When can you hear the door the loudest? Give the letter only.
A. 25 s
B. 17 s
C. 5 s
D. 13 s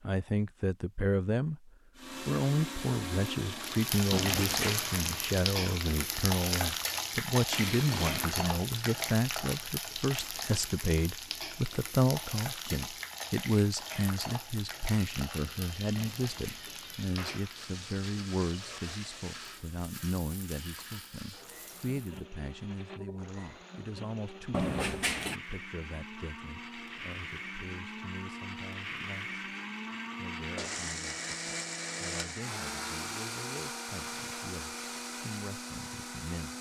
A.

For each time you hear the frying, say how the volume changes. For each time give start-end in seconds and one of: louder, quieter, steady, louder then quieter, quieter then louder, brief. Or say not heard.
3.5-22.2 quieter.